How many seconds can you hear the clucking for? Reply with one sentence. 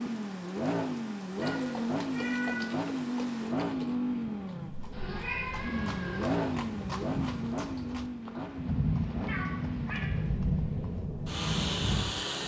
The clucking can't be heard in this clip.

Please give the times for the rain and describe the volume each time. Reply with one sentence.
You can hear the rain from 0.0 to 12.4 s, getting louder.